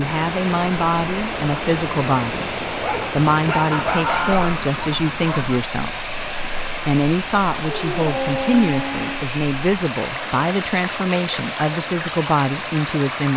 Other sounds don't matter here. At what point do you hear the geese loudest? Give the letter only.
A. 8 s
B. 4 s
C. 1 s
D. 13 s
B.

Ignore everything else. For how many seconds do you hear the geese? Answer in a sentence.
The geese can be heard for 2 seconds in total.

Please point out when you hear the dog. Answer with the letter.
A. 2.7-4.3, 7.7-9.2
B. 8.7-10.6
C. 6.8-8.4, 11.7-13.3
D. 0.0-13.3
A.